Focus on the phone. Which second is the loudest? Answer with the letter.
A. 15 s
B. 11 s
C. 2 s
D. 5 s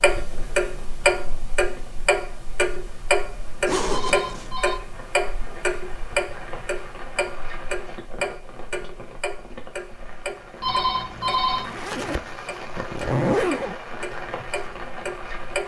B.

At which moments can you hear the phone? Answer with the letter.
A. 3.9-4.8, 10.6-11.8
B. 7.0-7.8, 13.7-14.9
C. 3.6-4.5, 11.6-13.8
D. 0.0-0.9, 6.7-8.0
A.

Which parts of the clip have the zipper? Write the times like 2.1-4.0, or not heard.
3.6-4.5, 11.6-13.8.